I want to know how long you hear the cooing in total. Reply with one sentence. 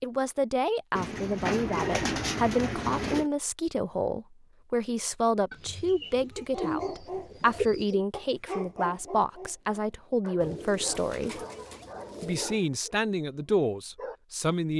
You can hear the cooing for 7 seconds altogether.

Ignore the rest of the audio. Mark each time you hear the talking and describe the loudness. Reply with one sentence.
You can hear the talking from 0.0 to 11.4 s, at a steady volume; and briefly from 12.2 to 14.7 s.